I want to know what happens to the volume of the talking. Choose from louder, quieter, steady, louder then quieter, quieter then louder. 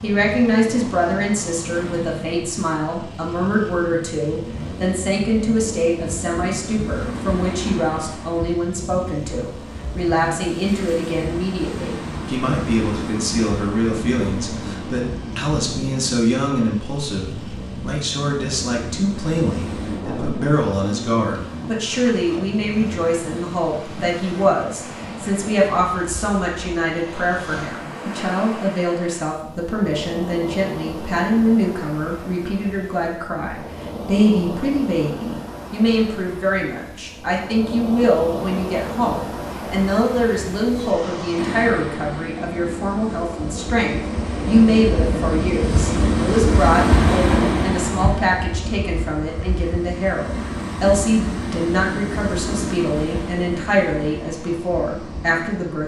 steady.